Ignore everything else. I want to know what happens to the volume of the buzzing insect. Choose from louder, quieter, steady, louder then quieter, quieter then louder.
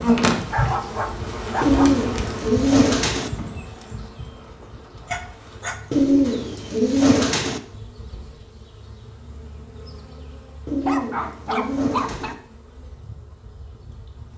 quieter.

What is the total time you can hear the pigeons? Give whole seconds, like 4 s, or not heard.
5 s.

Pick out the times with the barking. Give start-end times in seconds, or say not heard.
0.5-2.0, 5.0-5.8, 10.8-12.3.